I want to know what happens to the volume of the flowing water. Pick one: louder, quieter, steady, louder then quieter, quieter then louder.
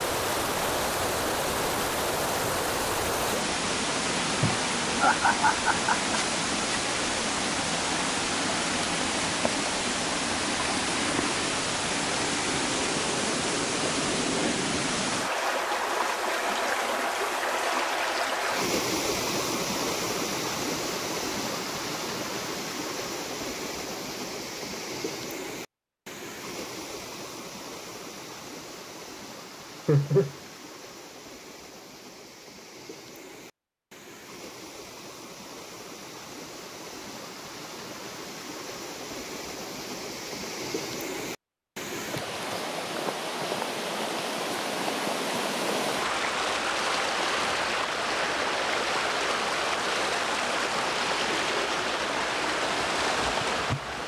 quieter then louder.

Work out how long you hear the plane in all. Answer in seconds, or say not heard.
not heard.